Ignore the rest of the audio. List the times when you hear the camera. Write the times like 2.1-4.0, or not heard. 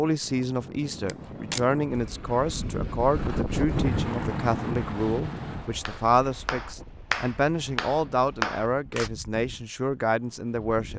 1.1-1.6.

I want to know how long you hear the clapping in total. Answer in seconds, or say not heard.
3 s.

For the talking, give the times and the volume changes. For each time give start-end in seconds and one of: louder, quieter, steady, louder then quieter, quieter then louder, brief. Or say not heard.
0.0-10.9 steady.